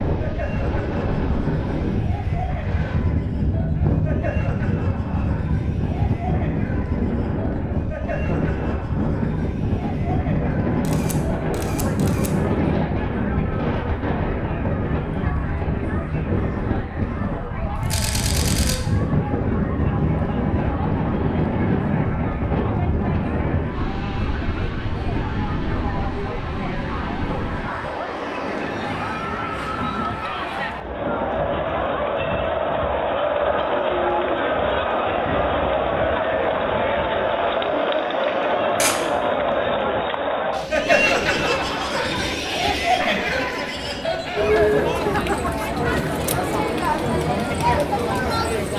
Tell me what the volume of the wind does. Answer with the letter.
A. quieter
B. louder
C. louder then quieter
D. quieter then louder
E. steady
A.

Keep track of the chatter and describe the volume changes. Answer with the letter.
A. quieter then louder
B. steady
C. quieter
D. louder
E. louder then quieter
D.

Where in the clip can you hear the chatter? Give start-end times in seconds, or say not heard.
0.1-48.7.